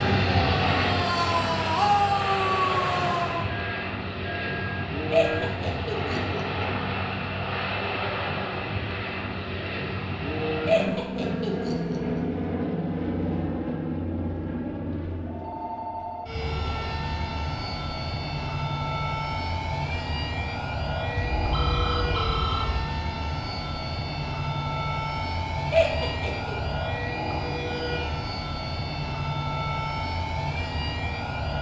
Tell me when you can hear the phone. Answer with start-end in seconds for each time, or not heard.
3.5-5.5, 15.2-16.3, 21.3-22.9.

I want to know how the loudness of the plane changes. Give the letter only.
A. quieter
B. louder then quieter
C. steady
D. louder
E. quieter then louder
C.